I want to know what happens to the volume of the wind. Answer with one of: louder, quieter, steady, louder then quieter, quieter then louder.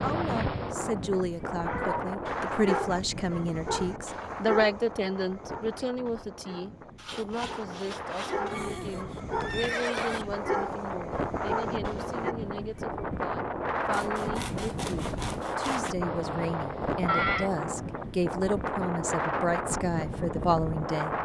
quieter then louder.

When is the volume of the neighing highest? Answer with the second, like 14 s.
17 s.